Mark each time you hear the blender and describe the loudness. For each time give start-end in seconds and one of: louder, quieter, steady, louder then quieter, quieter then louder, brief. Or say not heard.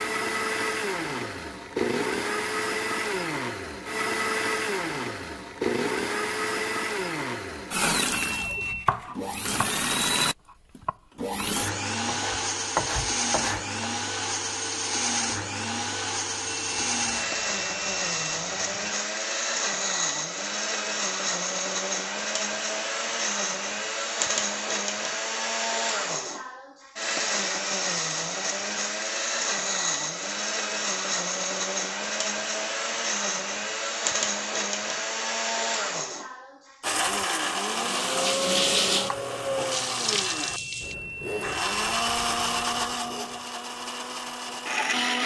0.0-45.2 steady.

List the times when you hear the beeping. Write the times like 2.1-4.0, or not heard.
8.1-8.9, 16.4-18.9, 40.3-42.6.